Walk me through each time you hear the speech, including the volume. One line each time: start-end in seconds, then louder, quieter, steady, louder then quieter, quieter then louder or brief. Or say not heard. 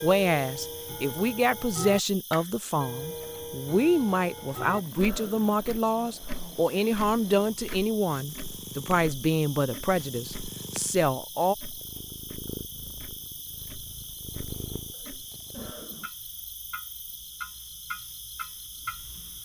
0.0-11.6 steady.